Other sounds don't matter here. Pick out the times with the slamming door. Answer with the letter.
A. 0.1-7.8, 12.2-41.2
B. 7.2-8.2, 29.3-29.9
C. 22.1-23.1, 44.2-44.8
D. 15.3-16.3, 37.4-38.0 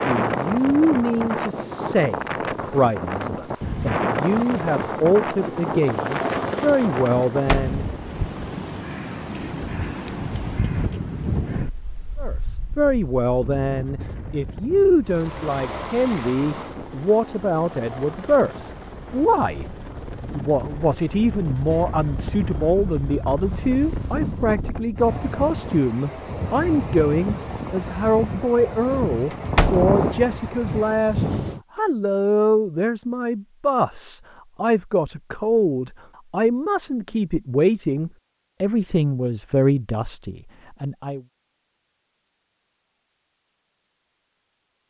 B.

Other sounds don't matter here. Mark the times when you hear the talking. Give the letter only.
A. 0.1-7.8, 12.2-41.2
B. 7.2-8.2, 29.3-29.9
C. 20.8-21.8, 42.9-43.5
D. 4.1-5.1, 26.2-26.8
A.